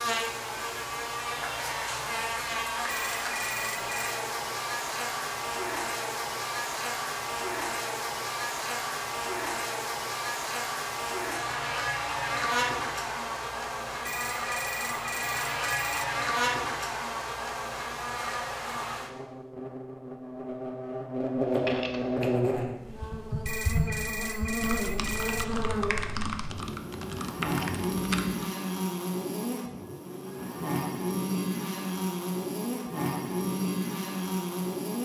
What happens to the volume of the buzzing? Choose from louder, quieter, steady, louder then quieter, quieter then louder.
steady.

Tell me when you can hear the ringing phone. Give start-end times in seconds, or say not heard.
2.9-4.2, 14.1-16.1, 23.4-25.4.